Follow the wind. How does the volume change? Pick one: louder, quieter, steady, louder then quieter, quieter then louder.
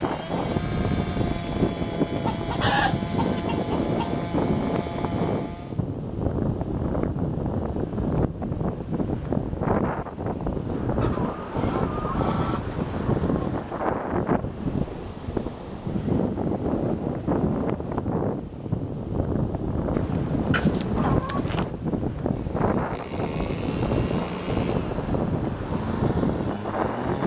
steady.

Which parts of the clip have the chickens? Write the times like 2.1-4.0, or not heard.
2.2-4.2, 10.9-13.8, 19.9-21.7.